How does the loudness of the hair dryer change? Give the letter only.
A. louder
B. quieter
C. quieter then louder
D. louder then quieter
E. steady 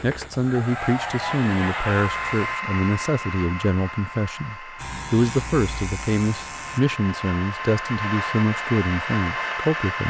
C.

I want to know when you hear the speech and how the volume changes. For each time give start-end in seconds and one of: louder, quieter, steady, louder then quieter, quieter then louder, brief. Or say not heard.
0.0-10.0 steady.